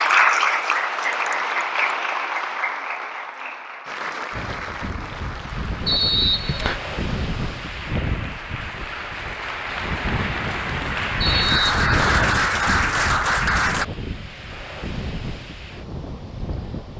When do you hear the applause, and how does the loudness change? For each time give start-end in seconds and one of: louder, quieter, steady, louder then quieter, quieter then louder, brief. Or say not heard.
0.0-13.8 quieter then louder.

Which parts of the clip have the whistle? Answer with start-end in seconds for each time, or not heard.
5.8-6.8, 11.2-12.3.